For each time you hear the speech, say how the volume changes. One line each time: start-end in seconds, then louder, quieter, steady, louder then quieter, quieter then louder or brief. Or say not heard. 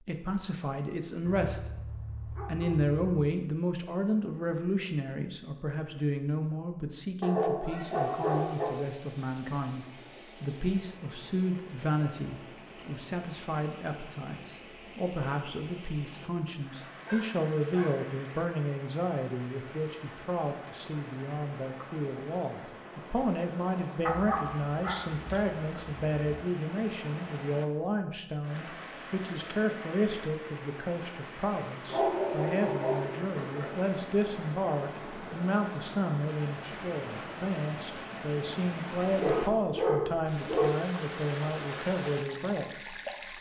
0.0-1.9 brief
2.5-43.0 steady.